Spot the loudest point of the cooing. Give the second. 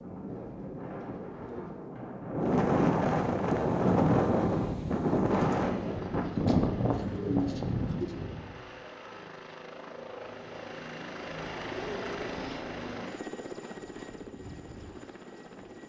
7 s.